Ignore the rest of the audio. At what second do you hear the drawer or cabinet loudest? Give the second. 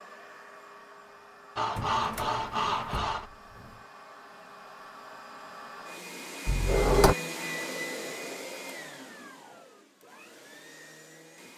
7 s.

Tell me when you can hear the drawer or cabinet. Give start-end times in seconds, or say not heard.
1.7-3.9, 6.5-7.2.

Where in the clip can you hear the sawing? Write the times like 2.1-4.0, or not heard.
1.6-3.3.